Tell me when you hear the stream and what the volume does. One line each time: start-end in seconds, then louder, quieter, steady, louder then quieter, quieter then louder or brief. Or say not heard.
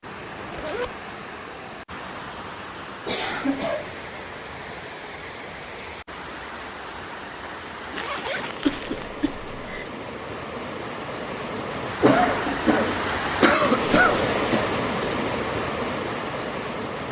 0.0-17.0 louder.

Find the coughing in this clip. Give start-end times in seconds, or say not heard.
3.0-3.9, 8.7-9.9, 12.0-14.7.